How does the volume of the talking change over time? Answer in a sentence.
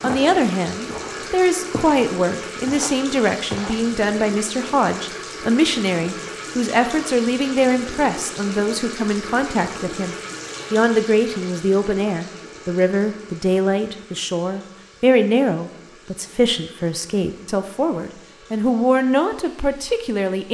The loudness of the talking stays about the same.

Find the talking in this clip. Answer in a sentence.
You can hear the talking from 0.0 to 20.5 s.